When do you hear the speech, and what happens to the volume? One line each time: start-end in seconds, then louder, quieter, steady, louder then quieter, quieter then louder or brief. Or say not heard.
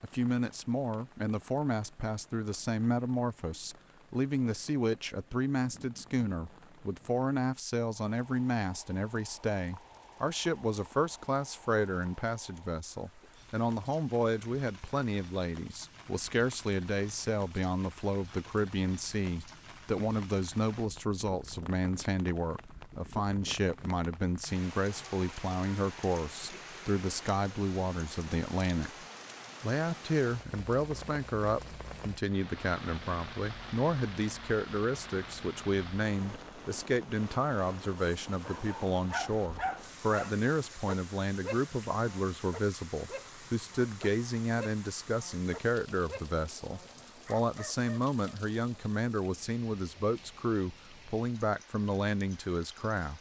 0.0-28.9 steady
29.6-53.1 steady.